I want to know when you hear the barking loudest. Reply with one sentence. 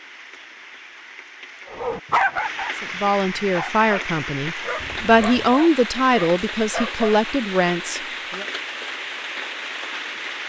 The volume of the barking peaks at 2 seconds.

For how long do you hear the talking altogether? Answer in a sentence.
You can hear the talking for 6 seconds altogether.